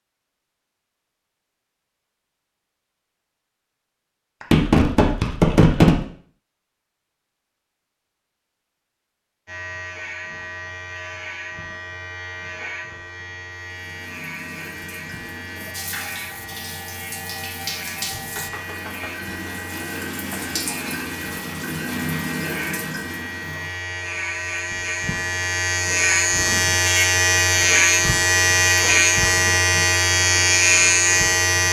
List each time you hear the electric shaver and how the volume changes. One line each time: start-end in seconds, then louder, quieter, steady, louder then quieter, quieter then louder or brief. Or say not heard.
9.4-31.6 louder.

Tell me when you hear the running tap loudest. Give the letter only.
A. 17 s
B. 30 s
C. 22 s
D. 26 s
C.